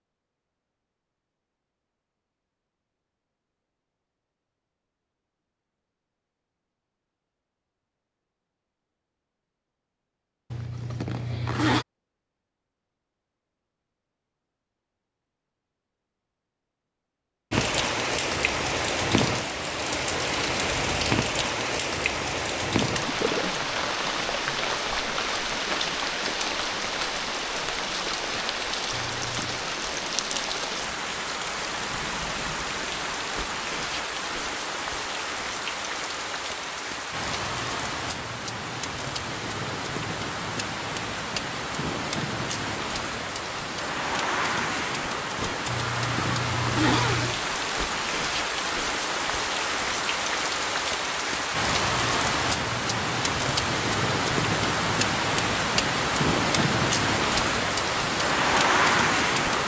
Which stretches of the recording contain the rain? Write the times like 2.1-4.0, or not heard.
17.5-59.6.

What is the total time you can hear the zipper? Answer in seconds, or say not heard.
4 s.